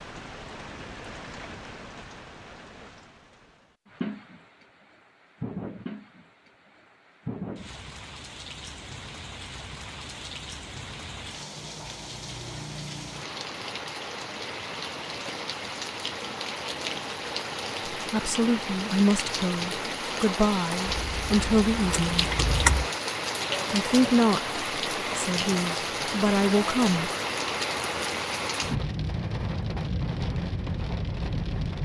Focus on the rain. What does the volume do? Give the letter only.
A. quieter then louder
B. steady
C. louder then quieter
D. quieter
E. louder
E.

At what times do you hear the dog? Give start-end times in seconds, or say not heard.
not heard.